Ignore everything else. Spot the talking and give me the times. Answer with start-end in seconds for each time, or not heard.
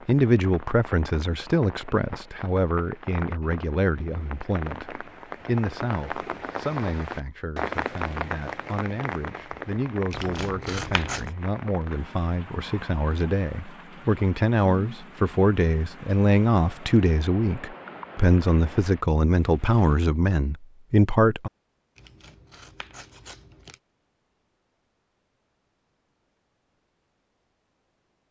0.1-21.5.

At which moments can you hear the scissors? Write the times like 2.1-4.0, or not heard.
10.1-11.2, 21.9-23.8.